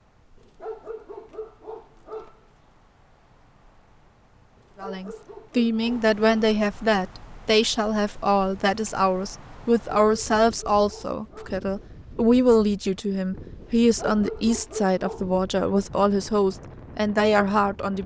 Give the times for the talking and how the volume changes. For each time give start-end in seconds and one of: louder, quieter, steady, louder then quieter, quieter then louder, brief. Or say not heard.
4.8-18.0 steady.